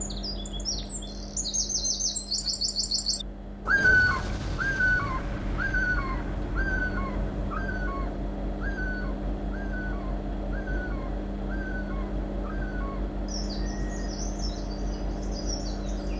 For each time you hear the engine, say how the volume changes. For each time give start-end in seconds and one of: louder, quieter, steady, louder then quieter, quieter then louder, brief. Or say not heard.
0.0-16.1 louder.